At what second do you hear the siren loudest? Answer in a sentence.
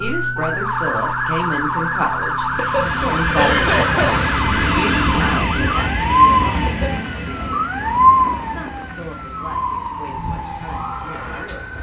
The loudest moment of the siren is at 8 seconds.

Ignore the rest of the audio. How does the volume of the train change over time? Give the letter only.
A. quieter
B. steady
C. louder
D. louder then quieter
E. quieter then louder
A.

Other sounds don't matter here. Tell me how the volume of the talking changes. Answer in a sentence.
The volume of the talking goes down.